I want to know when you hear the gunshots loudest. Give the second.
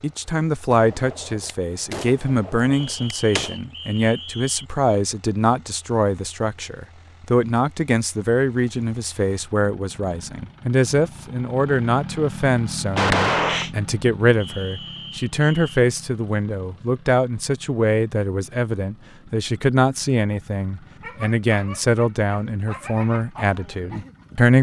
13 s.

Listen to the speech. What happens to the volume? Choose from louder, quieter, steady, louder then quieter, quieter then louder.
steady.